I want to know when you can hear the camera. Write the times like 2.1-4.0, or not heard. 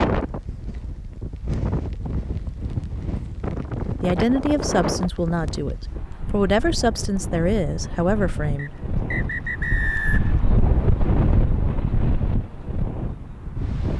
not heard.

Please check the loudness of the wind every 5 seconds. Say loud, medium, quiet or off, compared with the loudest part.
loud, medium, loud.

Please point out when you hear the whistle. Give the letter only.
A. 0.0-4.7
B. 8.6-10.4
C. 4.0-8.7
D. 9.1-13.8
B.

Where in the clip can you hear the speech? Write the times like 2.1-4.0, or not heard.
4.0-8.7.